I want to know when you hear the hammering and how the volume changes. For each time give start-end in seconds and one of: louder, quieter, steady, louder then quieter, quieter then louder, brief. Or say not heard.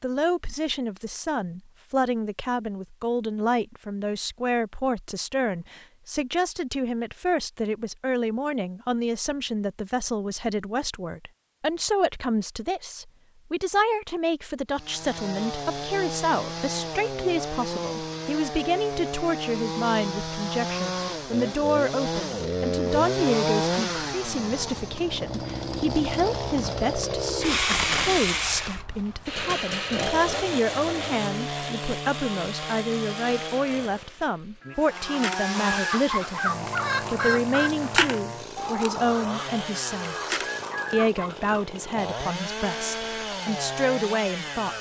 not heard.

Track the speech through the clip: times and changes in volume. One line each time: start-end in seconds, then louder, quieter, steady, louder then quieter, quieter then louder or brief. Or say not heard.
0.0-44.7 steady.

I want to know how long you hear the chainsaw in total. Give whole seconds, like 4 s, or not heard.
30 s.